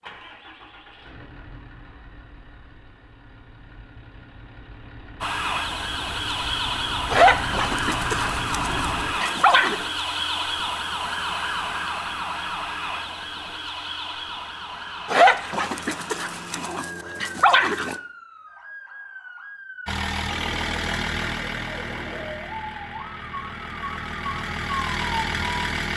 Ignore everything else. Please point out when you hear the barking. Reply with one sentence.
You can hear the barking from 7.1 to 9.8 s and from 15.1 to 17.9 s.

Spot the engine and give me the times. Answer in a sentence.
You can hear the engine from 0.0 to 9.2 s and from 19.9 to 25.9 s.